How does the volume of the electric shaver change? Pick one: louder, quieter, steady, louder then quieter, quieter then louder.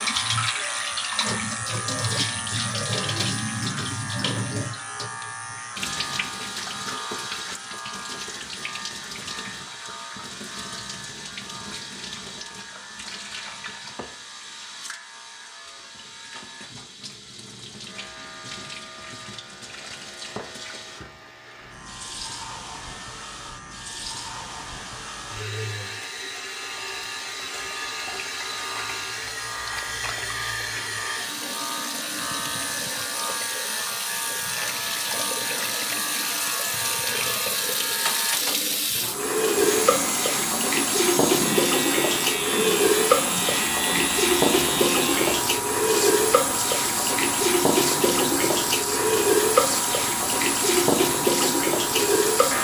quieter then louder.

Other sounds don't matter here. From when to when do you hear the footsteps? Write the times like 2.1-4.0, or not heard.
not heard.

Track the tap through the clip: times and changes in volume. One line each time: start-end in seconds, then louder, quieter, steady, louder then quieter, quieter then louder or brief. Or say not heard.
0.0-52.5 quieter then louder.